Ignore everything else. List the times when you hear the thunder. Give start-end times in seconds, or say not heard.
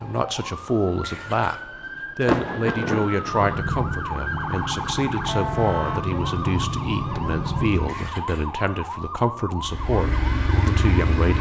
2.2-3.6.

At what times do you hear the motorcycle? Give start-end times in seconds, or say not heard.
3.2-8.2, 9.6-11.3.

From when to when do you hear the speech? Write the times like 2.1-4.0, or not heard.
0.0-1.6, 2.1-11.3.